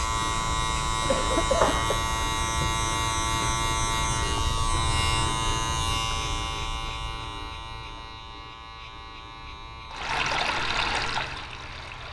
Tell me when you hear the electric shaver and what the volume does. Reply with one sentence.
You can hear the electric shaver from 0.0 to 12.0 s, getting quieter.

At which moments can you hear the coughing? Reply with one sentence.
The coughing can be heard from 1.1 to 2.0 s.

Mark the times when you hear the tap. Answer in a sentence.
The tap can be heard from 9.9 to 12.0 s.